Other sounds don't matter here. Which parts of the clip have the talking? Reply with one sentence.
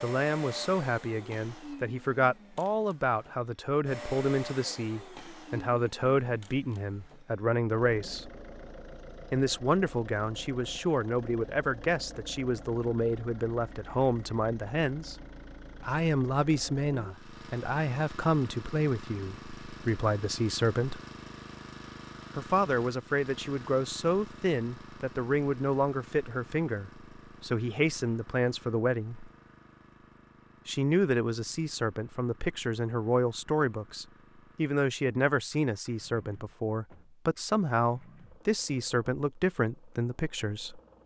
You can hear the talking from 0.0 to 8.3 s, from 9.3 to 15.2 s, from 15.8 to 21.0 s, from 22.4 to 29.3 s and from 30.6 to 40.8 s.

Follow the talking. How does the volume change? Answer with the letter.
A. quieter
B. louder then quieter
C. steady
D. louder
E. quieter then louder
C.